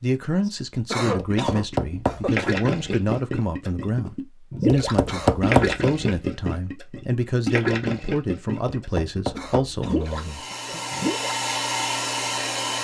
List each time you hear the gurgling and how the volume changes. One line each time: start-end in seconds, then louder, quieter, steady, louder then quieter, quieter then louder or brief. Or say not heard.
1.1-11.3 steady.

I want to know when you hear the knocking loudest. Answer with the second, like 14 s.
5 s.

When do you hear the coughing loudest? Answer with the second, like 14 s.
1 s.